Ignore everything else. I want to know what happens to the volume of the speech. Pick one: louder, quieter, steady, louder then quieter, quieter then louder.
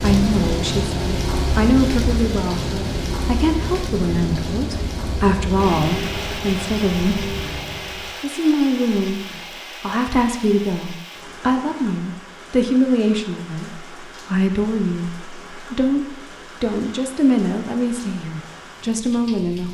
steady.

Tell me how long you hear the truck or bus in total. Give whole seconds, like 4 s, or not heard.
8 s.